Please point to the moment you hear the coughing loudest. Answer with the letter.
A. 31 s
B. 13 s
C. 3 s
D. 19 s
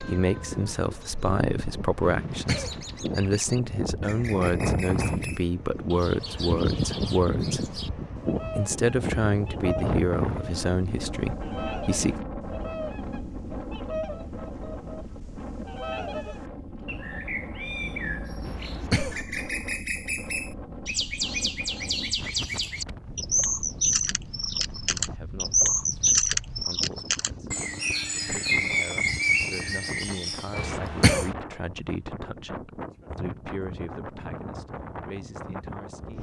A.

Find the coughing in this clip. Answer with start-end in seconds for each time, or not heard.
2.0-2.8, 18.4-19.2, 30.6-31.4.